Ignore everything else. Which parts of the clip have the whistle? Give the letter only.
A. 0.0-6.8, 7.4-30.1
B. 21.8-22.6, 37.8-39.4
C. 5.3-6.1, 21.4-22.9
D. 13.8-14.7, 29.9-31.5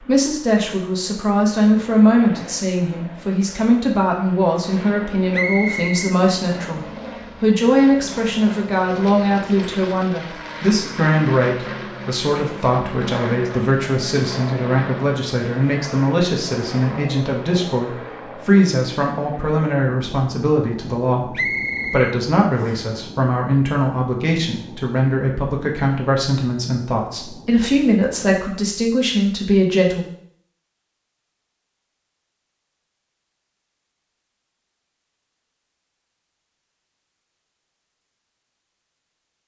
C.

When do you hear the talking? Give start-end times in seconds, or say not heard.
0.0-6.8, 7.4-30.1.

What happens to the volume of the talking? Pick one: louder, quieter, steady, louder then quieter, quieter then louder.
steady.